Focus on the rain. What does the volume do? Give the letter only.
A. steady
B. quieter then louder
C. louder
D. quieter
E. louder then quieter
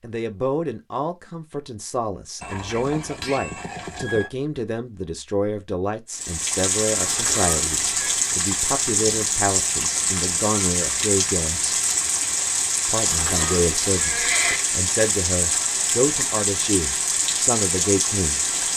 A.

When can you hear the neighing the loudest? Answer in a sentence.
The loudest moment of the neighing is at 14 seconds.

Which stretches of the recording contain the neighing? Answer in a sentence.
The neighing can be heard from 2.4 to 4.3 s, from 7.0 to 8.2 s and from 13.1 to 14.6 s.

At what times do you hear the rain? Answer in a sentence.
You can hear the rain from 6.1 to 18.7 s.